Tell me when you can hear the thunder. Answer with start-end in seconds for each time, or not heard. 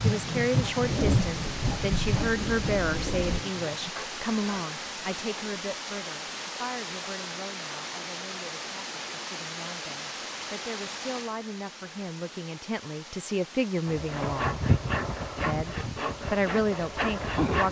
0.8-3.5.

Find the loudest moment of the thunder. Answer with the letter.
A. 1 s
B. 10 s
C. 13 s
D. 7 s
A.